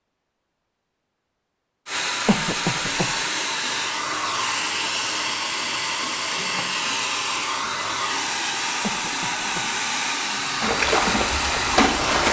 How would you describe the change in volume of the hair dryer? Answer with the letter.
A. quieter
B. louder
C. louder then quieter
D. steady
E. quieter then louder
D.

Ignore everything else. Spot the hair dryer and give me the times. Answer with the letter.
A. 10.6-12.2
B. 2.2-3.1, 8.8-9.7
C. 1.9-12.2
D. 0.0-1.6
C.